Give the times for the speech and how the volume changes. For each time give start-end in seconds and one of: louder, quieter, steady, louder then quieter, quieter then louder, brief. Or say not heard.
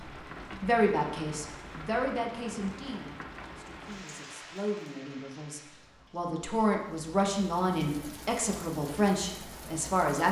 0.0-10.2 quieter then louder.